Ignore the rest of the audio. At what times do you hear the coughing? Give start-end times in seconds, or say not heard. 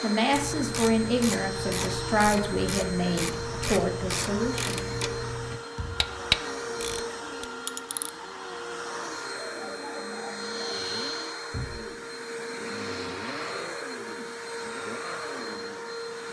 9.2-10.8.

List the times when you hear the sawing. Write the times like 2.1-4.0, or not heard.
not heard.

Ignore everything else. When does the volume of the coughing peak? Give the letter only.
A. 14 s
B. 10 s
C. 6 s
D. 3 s
B.